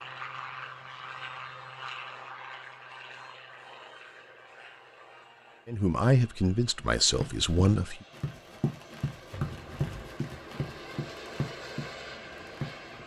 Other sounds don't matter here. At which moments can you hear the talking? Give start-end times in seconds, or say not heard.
5.7-8.1.